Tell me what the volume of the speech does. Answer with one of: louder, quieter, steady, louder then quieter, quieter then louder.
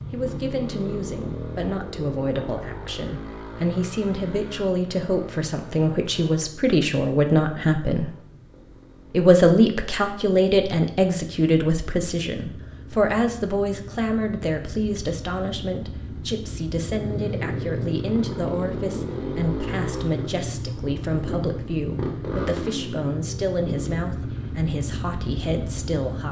louder then quieter.